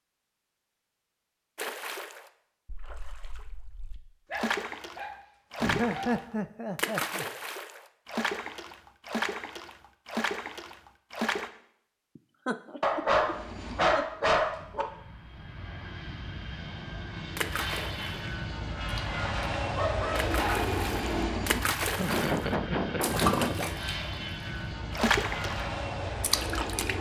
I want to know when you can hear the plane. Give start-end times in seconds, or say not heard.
13.2-26.9.